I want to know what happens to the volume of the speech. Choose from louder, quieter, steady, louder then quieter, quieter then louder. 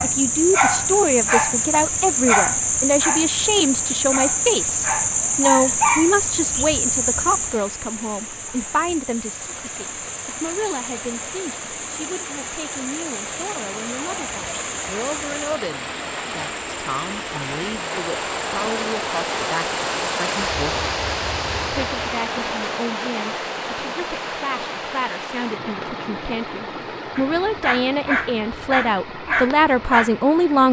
quieter then louder.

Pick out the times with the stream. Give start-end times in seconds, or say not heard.
0.0-30.6.